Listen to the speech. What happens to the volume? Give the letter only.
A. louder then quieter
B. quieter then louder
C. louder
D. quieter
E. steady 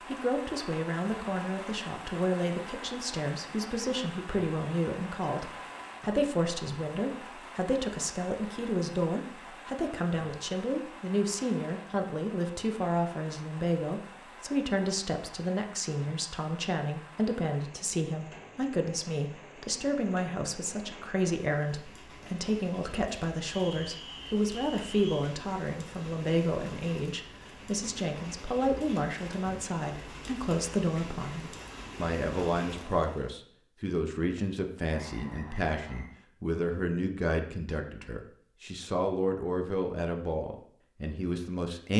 E.